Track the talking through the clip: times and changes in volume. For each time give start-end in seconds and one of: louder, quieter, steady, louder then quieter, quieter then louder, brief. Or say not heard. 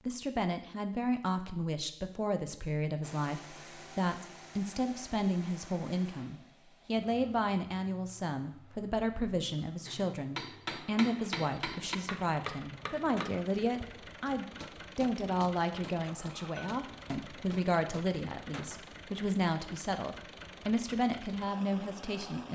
0.1-22.5 steady.